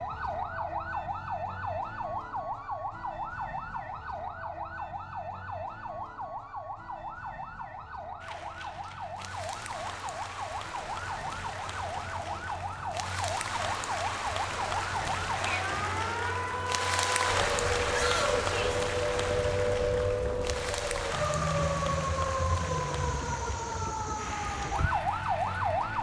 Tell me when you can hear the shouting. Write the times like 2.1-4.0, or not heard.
17.9-18.9.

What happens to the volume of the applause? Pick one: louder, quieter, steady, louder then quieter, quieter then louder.
louder then quieter.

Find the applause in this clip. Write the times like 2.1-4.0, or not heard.
8.2-25.9.